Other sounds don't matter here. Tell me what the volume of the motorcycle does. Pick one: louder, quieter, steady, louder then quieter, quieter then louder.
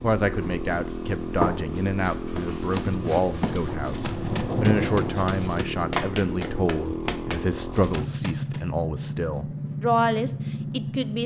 steady.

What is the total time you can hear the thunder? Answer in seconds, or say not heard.
2 s.